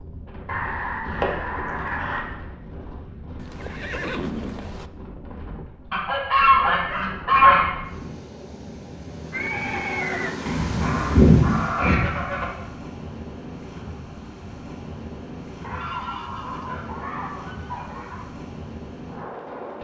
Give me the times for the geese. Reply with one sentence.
You can hear the geese from 0.5 to 2.2 s, from 5.9 to 7.7 s, from 10.4 to 12.4 s and from 15.6 to 18.2 s.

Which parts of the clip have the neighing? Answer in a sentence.
The neighing can be heard from 3.4 to 4.9 s, from 9.3 to 10.3 s and from 15.8 to 16.8 s.